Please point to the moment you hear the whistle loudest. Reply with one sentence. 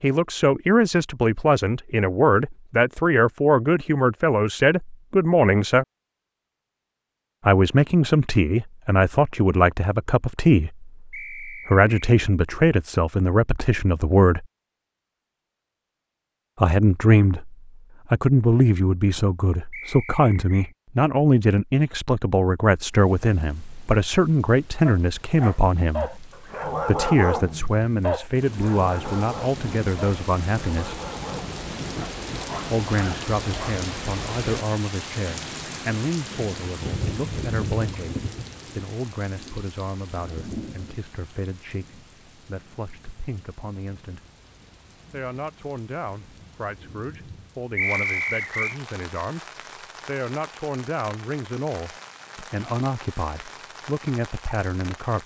The volume of the whistle peaks at 48 seconds.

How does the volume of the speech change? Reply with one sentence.
The loudness of the speech goes down.